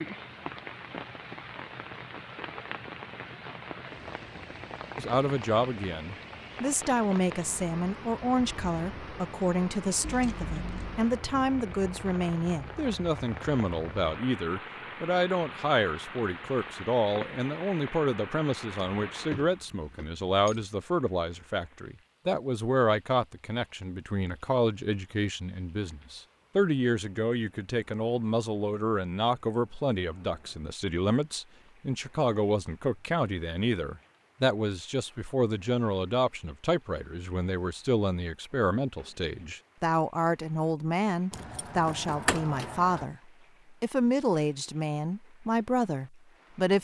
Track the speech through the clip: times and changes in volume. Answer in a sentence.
You can hear the speech from 5.0 to 46.7 s, at a steady volume.